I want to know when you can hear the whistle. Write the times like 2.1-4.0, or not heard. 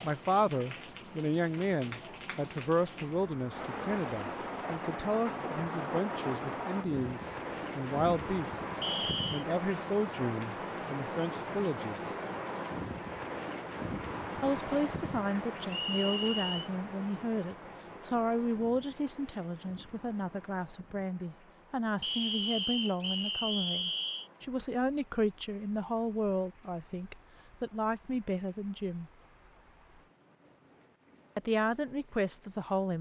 8.8-9.4, 15.7-16.7, 22.0-24.3.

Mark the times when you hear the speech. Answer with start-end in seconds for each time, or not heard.
0.0-12.2, 14.4-29.1, 31.4-32.9.